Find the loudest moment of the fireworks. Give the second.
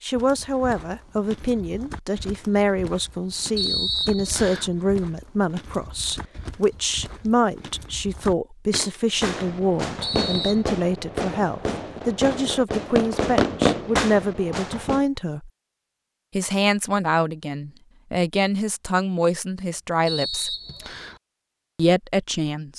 14 s.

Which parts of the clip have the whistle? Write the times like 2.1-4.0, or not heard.
3.5-4.7, 10.0-10.6, 20.1-21.2.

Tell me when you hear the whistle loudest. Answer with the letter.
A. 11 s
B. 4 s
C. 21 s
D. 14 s
B.